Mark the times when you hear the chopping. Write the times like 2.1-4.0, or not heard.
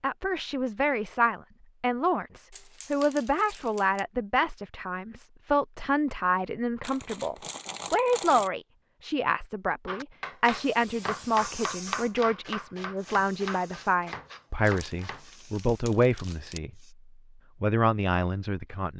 9.8-15.3.